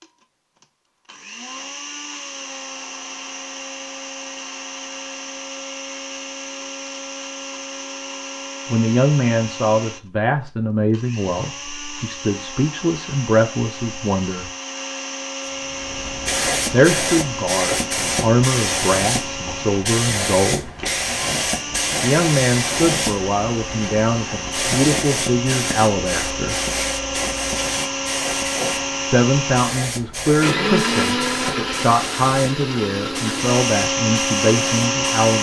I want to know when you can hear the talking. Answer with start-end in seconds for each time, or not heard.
8.7-14.5, 16.7-20.7, 22.0-26.6, 29.1-35.3.